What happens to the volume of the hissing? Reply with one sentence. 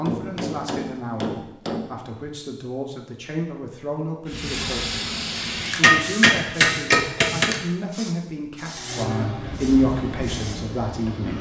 The volume of the hissing goes down.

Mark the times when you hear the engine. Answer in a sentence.
You can hear the engine from 8.8 to 11.3 s.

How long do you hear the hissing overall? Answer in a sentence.
You can hear the hissing for 7 seconds altogether.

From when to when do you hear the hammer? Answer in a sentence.
The hammer can be heard from 0.1 to 1.9 s and from 5.8 to 7.5 s.